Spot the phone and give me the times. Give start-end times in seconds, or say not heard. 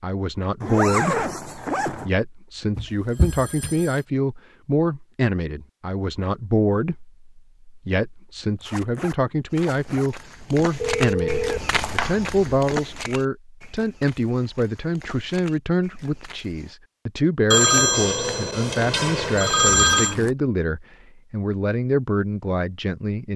2.8-4.0, 10.8-12.6, 17.5-20.1.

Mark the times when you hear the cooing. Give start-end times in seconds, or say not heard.
not heard.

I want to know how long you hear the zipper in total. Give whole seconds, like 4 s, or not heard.
4 s.